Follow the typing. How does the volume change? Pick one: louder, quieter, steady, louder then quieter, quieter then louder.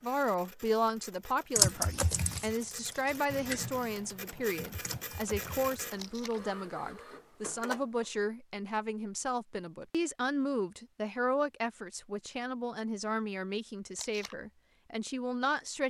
quieter.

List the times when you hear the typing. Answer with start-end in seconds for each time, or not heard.
1.6-6.5.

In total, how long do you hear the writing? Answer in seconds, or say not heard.
not heard.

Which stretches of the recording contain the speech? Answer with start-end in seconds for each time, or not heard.
0.0-15.8.